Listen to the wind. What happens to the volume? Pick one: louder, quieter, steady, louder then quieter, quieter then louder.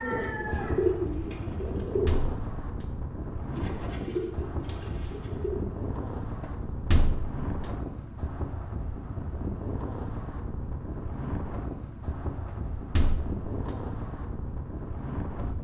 steady.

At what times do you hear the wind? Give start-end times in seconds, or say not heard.
0.0-15.5.